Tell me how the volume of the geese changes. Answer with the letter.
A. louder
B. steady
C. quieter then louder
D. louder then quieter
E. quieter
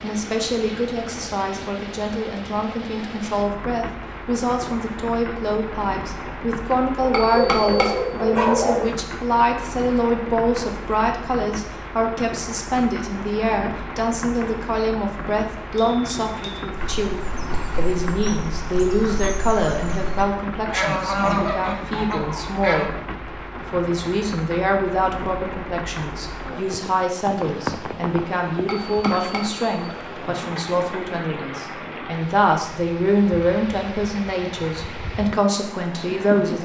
D.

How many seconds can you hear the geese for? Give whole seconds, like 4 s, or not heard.
6 s.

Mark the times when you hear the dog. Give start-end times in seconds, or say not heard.
7.0-8.8.